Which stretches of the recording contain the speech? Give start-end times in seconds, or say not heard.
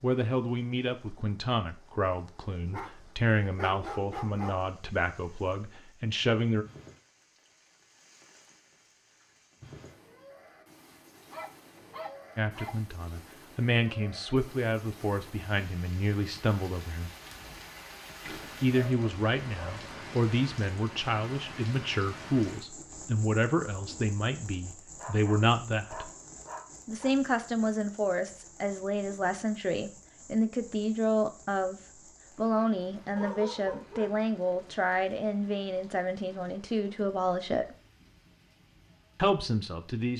0.0-6.7, 12.3-17.1, 18.6-26.1, 26.9-37.8, 39.1-40.1.